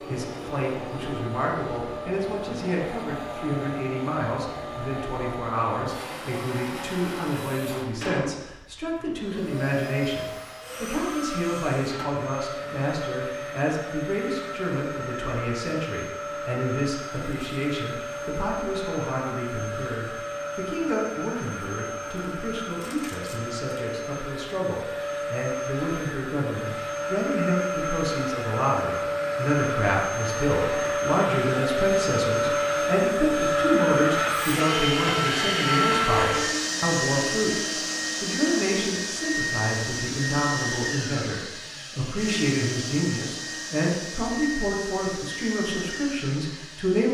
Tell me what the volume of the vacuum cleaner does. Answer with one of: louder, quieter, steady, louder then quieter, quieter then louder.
louder then quieter.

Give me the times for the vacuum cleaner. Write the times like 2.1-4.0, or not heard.
0.0-47.0.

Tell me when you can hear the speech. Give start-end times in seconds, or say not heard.
0.0-37.6, 38.2-47.0.